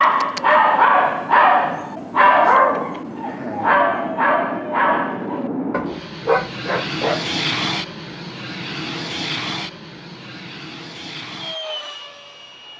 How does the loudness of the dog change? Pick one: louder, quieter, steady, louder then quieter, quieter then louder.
quieter.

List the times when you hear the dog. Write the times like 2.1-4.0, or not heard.
0.0-7.2.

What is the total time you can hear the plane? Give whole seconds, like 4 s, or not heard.
13 s.